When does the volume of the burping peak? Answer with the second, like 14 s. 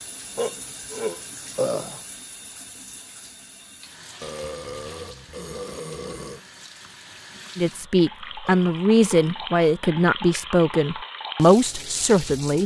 2 s.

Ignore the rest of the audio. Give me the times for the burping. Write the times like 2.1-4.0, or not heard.
0.3-2.0, 4.2-6.4, 8.4-9.5.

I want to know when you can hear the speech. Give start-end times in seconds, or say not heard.
7.5-12.6.